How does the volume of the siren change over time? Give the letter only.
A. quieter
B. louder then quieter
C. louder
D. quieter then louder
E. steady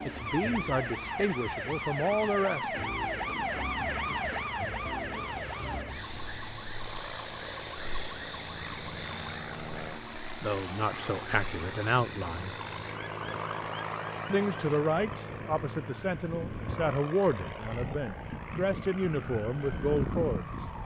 D.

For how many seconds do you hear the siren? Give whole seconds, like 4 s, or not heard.
21 s.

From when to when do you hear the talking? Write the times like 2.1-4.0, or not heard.
0.0-2.8, 10.4-12.6, 14.3-20.5.